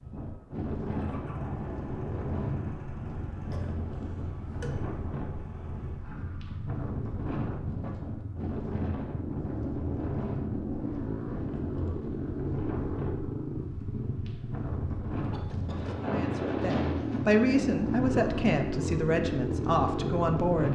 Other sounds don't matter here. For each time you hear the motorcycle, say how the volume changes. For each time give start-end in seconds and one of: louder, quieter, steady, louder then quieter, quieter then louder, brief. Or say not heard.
0.0-20.7 louder.